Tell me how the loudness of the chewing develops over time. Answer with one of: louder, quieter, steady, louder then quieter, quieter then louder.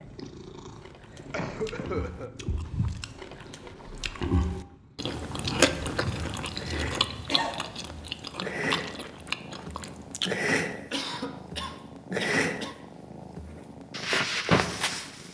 louder then quieter.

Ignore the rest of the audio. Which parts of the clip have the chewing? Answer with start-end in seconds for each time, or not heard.
0.8-10.5.